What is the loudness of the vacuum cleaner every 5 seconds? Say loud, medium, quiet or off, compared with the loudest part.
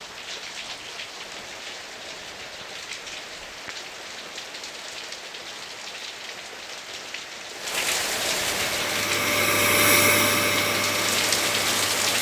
off, loud, loud.